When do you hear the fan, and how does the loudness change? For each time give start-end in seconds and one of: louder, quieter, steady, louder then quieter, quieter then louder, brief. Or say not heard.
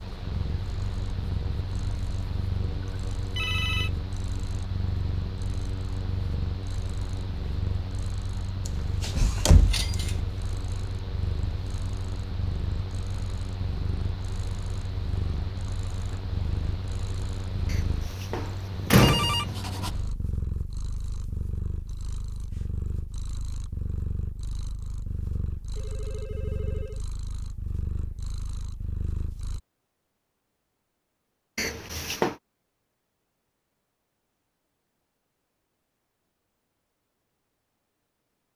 0.0-20.1 steady.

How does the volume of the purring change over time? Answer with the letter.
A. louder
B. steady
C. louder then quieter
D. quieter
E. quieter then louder
B.